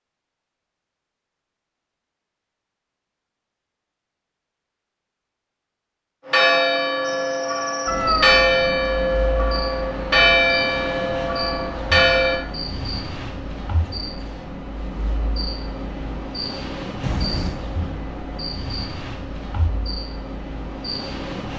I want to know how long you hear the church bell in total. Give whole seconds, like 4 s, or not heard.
6 s.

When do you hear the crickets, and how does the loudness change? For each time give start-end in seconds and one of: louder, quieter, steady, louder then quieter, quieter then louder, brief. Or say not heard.
7.0-21.5 steady.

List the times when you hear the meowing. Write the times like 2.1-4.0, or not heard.
7.8-8.3, 17.0-17.6.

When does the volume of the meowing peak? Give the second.
8 s.